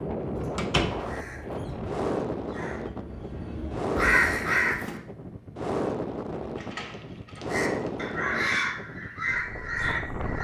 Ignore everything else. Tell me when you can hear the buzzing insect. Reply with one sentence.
The buzzing insect can't be heard in this clip.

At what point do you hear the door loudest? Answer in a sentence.
The loudest moment of the door is at 1 second.